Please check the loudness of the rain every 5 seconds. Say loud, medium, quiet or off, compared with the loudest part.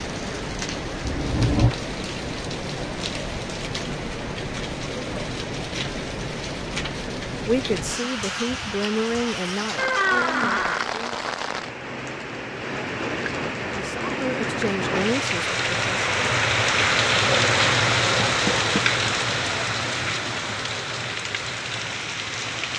medium, medium, medium, loud, medium.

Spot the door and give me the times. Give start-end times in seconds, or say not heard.
1.1-1.8, 9.8-10.8, 18.1-18.9.